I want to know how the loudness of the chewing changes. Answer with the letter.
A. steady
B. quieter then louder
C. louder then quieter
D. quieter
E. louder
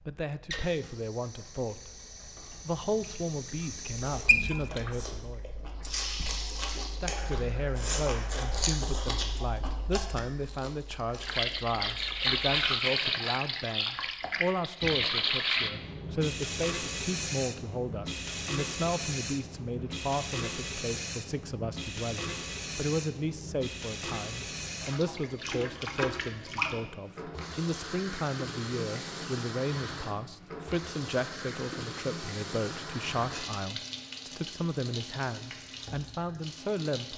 C.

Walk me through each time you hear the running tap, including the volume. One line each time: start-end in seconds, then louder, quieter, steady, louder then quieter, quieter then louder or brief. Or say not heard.
0.0-8.8 louder then quieter
11.2-37.1 quieter.